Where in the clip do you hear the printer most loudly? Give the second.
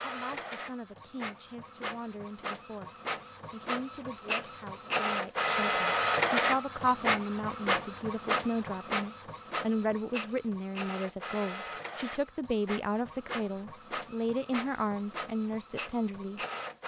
6 s.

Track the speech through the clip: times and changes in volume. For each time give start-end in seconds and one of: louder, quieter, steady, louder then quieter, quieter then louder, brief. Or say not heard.
0.0-16.4 louder.